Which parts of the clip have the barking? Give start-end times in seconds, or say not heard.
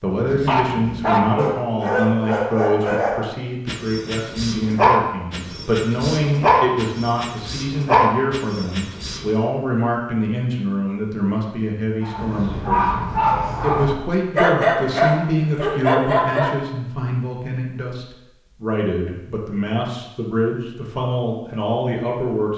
0.2-9.3, 12.0-16.6.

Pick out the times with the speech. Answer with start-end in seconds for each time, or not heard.
0.0-22.5.